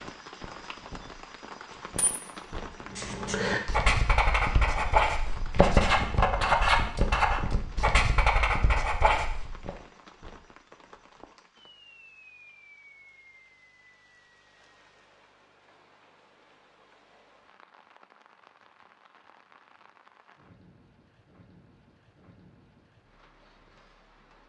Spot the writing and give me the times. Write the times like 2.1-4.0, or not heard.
2.9-9.7.